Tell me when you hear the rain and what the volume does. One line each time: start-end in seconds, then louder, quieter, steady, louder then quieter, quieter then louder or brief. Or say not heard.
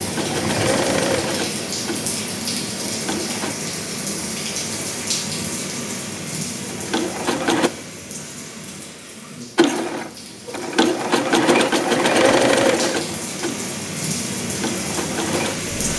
0.0-15.9 quieter then louder.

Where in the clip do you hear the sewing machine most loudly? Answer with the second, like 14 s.
12 s.